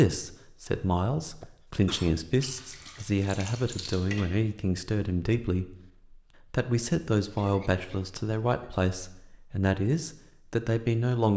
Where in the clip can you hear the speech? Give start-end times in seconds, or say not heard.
0.0-5.7, 6.5-11.3.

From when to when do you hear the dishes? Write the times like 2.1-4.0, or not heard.
not heard.